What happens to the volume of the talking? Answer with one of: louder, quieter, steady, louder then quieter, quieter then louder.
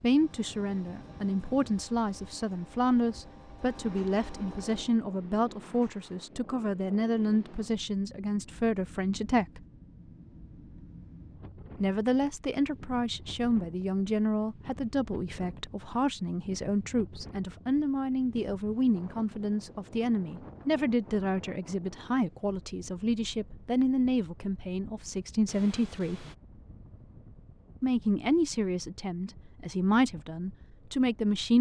steady.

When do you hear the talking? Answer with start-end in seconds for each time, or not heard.
0.0-9.7, 11.8-26.2, 27.8-31.5.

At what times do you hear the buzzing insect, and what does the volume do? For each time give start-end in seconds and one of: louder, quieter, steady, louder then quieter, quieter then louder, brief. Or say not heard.
not heard.